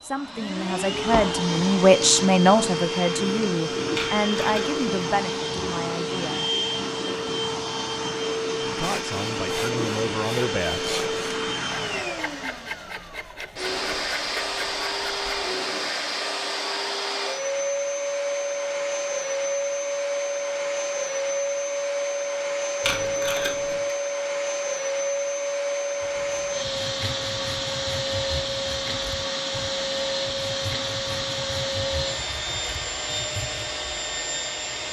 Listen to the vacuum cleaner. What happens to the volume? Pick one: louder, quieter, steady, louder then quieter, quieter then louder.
steady.